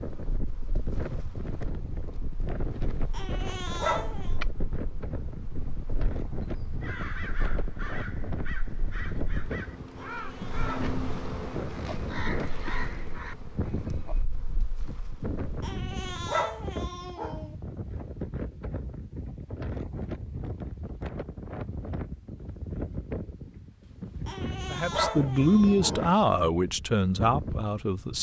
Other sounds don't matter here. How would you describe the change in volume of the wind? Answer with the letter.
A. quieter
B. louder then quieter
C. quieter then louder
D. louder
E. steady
E.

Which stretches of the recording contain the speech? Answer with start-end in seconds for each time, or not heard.
24.6-28.1.